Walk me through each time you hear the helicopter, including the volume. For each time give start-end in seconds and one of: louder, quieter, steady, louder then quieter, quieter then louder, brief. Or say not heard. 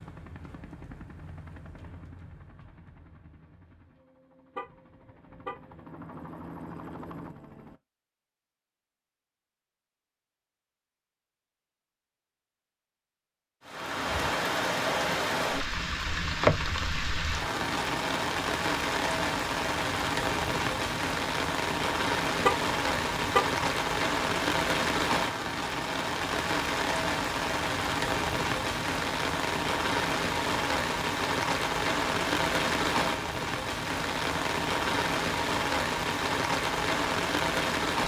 0.0-7.8 quieter then louder.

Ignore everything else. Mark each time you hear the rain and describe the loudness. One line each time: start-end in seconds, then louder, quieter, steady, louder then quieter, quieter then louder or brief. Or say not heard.
13.7-38.0 steady.